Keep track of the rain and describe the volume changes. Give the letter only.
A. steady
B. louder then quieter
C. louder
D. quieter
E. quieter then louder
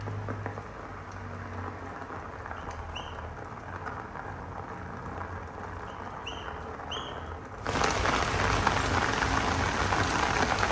C.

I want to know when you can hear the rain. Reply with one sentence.
The rain can be heard from 0.0 to 10.6 s.